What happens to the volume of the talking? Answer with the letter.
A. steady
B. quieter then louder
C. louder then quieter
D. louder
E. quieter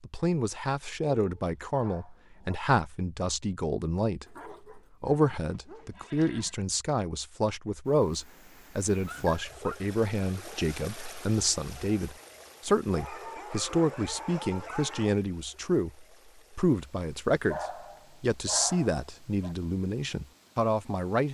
A.